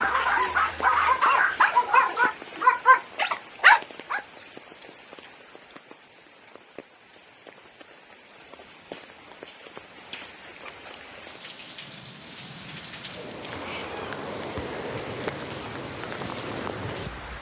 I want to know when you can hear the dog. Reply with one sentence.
You can hear the dog from 0.0 to 4.2 s.